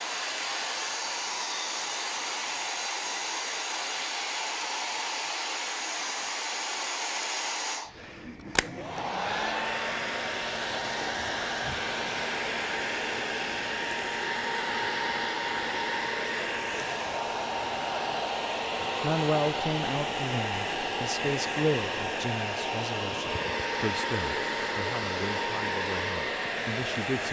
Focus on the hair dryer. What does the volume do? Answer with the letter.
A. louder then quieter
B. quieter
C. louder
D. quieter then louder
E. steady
E.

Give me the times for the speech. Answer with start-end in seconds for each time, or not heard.
18.8-27.2.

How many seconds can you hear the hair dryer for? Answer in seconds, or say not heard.
27 s.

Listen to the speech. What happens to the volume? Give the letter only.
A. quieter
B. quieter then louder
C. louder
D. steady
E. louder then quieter
A.